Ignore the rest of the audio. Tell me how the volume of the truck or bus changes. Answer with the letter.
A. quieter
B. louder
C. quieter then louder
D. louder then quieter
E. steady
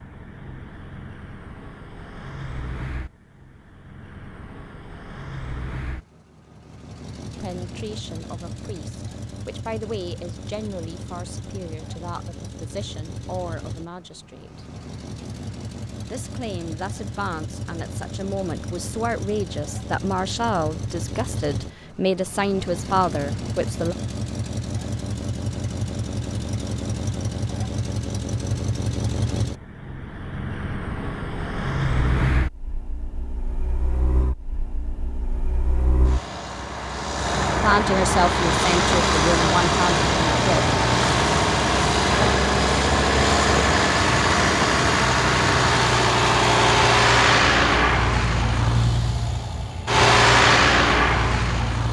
B.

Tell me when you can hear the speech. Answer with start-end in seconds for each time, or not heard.
7.4-14.7, 16.1-23.9, 37.6-40.6.